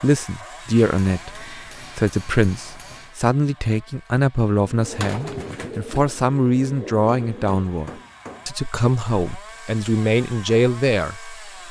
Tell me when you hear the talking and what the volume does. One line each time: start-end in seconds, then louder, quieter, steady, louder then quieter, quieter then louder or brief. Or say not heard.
0.0-11.6 steady.